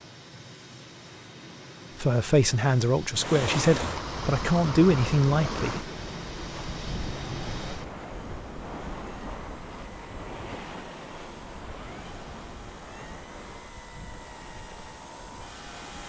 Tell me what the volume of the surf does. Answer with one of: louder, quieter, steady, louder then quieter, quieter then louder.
quieter.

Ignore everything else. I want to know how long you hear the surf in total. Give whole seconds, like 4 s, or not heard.
13 s.